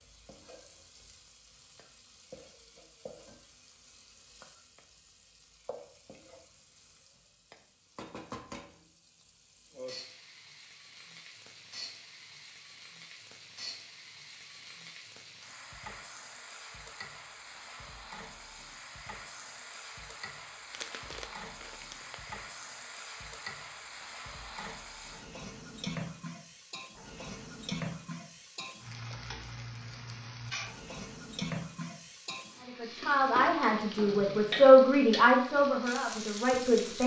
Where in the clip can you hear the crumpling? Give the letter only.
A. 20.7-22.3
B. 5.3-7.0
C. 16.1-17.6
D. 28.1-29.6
A.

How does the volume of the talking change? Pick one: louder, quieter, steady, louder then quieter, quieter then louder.
louder then quieter.